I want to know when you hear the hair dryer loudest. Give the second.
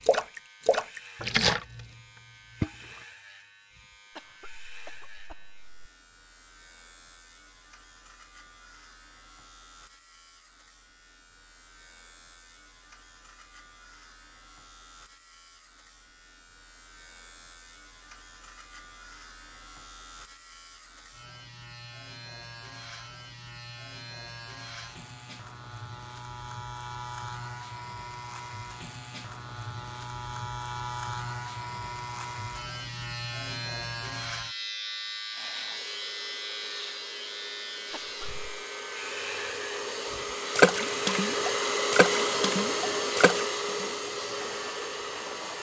42 s.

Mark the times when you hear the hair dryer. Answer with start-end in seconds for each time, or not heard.
35.3-45.5.